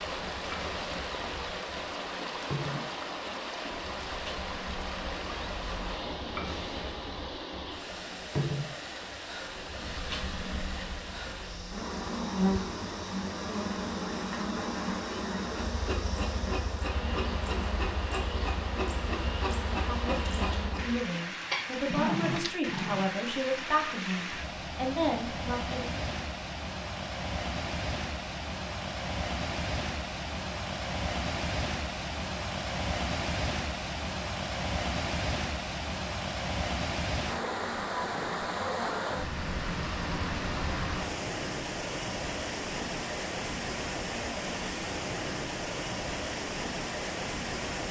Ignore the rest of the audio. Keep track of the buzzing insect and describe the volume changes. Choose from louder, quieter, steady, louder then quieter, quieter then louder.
louder.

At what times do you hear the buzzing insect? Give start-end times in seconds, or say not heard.
0.0-21.1.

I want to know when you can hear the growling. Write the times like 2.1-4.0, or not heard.
21.5-23.1.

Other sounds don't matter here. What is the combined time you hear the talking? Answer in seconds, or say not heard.
6 s.